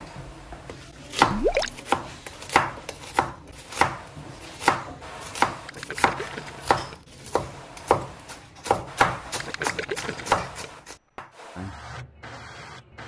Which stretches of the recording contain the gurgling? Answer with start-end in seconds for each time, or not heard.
1.2-1.8, 5.7-7.0, 9.3-10.7.